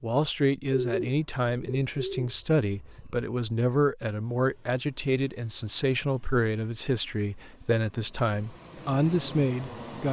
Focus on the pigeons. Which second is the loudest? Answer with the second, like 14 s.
1 s.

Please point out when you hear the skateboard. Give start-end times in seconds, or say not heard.
not heard.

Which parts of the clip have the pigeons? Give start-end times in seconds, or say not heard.
0.7-3.3.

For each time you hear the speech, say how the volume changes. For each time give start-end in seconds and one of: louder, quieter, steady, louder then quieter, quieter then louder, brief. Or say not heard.
0.0-10.0 steady.